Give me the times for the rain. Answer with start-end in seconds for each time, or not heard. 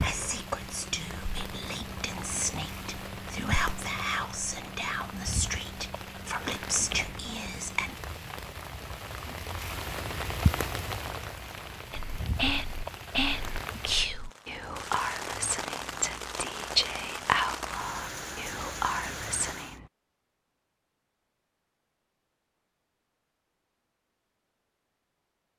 0.0-19.8.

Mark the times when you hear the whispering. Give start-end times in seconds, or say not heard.
0.0-8.0, 11.9-19.9.